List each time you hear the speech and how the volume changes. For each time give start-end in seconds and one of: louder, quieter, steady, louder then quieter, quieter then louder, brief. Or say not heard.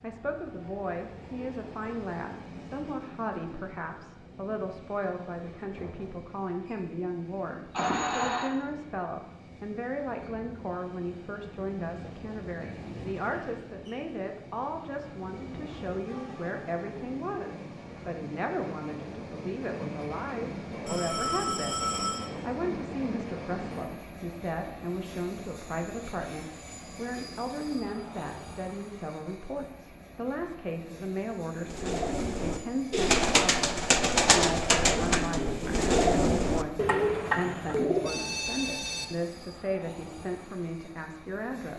0.0-41.7 steady.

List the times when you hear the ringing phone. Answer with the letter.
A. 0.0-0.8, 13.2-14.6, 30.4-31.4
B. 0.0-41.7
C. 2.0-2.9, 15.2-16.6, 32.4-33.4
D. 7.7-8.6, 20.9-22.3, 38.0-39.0
D.